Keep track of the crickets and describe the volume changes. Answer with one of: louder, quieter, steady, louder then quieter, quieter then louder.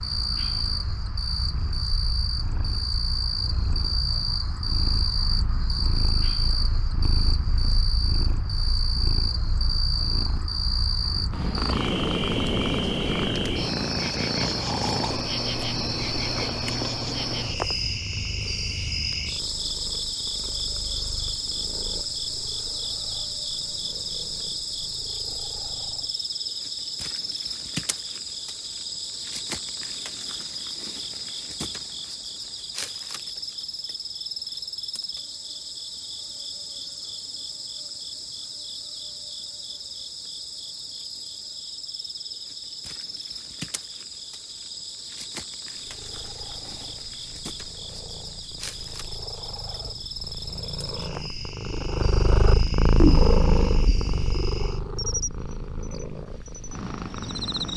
quieter.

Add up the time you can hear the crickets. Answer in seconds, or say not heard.
58 s.